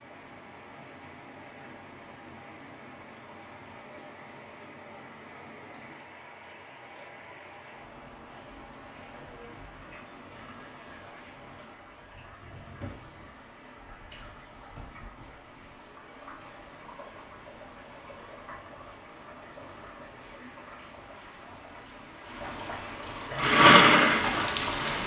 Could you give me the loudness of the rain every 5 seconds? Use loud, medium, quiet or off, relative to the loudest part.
medium, medium, medium, medium, loud.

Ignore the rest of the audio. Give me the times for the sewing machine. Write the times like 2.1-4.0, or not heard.
23.3-25.0.